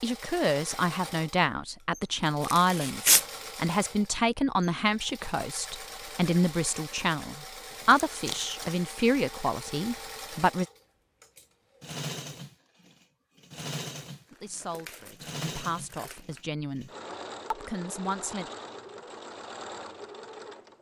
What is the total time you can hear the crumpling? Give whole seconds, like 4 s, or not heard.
4 s.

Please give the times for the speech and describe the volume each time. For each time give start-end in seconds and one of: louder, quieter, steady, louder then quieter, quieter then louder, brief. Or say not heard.
0.0-10.7 steady
14.3-16.9 brief
17.5-18.5 brief.